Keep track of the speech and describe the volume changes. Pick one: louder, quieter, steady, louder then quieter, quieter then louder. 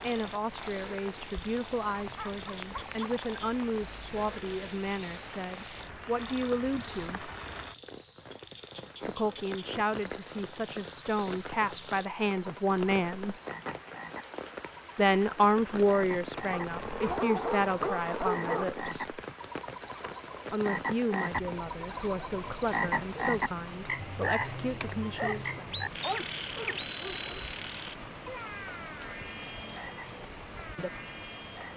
louder then quieter.